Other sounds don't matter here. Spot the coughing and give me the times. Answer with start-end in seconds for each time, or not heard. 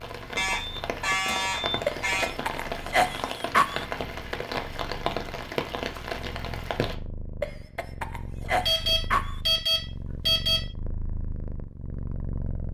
1.9-3.9, 7.4-9.4.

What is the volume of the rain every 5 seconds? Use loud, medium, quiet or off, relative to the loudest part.
loud, loud, off.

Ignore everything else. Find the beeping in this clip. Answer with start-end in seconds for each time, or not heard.
0.3-2.3, 8.7-10.7.